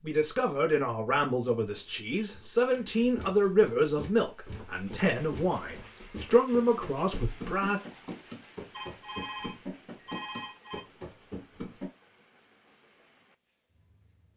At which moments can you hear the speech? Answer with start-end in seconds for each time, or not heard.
0.0-7.8.